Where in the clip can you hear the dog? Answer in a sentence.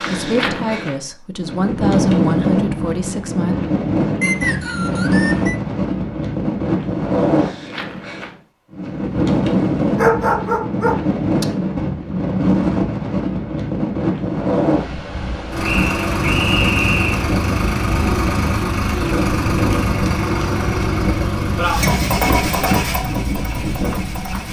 You can hear the dog from 9.9 to 11.4 s.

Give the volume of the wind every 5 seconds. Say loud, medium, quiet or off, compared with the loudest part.
loud, loud, loud, medium, medium.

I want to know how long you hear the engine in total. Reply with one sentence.
You can hear the engine for 9 seconds altogether.